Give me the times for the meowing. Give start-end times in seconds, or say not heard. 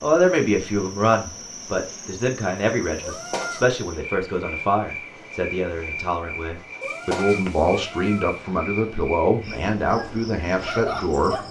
3.0-3.6, 6.8-8.3.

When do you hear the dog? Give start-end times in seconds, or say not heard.
9.8-11.4.